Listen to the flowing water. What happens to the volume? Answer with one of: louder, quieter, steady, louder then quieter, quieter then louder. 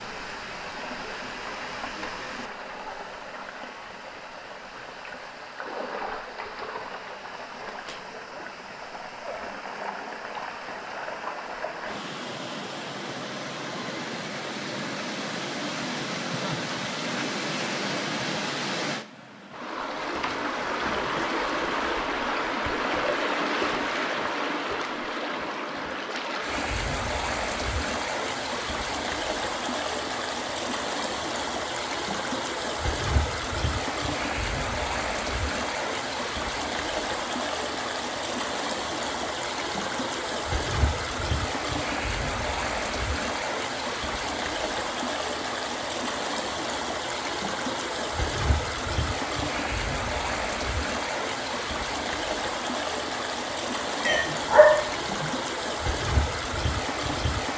louder.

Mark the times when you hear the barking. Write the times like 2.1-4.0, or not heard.
54.0-55.3.